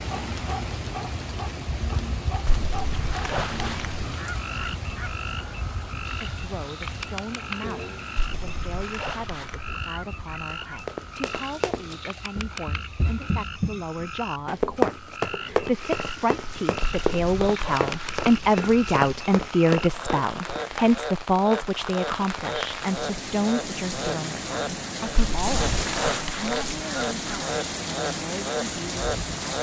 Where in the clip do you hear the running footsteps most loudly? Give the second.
15 s.